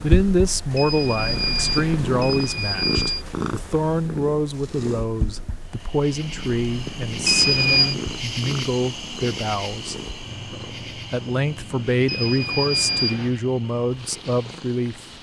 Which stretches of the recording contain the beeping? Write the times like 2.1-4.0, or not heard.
0.8-3.2, 7.2-8.0, 12.1-13.3.